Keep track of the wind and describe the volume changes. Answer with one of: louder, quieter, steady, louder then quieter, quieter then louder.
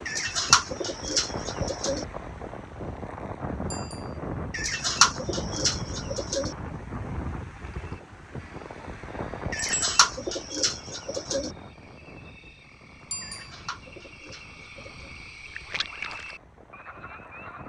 quieter.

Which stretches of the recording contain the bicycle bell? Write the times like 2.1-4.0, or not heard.
3.7-4.2, 9.6-10.0, 13.1-13.6.